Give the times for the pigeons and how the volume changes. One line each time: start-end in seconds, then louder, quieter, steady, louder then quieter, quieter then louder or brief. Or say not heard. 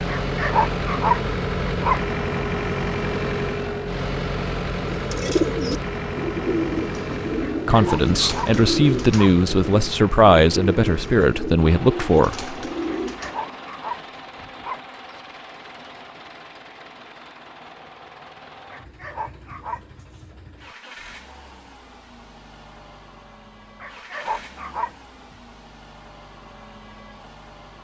4.8-13.6 quieter.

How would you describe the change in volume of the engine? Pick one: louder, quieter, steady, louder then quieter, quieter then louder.
quieter.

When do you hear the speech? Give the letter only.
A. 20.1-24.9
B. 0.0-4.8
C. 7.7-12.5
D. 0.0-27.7
C.